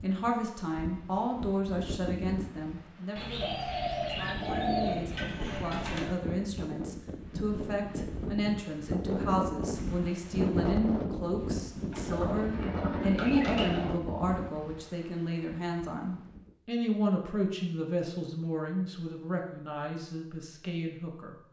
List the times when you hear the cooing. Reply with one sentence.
You can hear the cooing from 3.1 to 6.1 s and from 11.9 to 13.8 s.